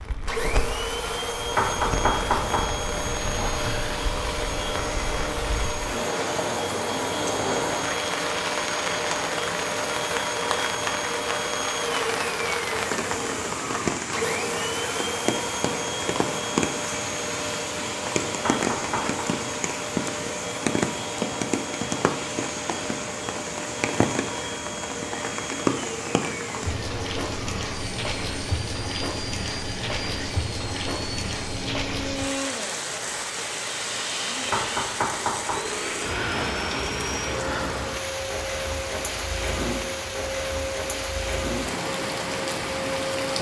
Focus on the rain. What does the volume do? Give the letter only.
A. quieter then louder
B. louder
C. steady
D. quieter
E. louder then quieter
C.